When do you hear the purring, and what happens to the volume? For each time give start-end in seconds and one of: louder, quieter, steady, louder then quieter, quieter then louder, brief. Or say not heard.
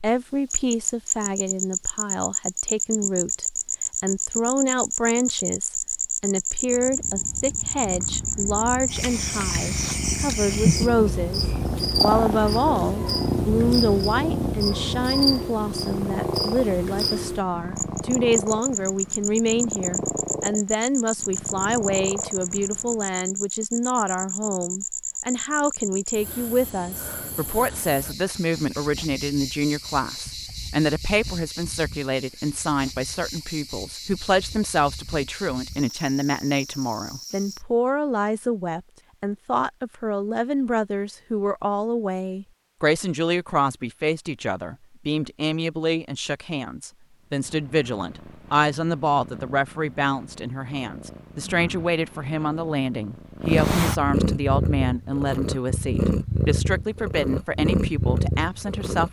6.7-23.1 louder then quieter
47.2-59.0 louder.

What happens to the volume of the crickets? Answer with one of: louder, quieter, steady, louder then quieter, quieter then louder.
quieter.